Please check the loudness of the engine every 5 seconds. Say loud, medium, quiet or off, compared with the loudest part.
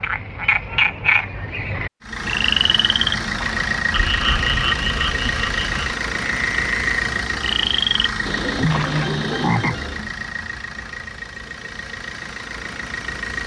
loud, loud, medium.